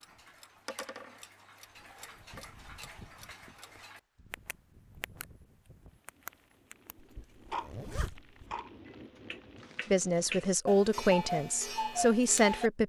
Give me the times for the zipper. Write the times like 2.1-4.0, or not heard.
7.0-8.4.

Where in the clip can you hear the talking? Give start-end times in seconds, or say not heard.
9.9-12.8.